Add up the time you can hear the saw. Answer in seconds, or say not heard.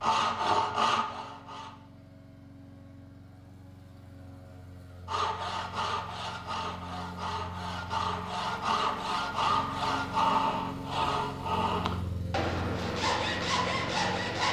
11 s.